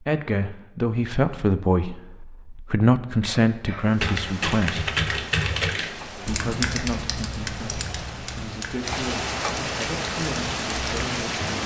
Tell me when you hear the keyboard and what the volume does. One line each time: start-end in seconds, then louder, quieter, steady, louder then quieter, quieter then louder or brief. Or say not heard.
4.0-11.6 quieter.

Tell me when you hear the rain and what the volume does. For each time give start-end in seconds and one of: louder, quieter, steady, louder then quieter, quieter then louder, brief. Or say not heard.
3.8-11.6 louder.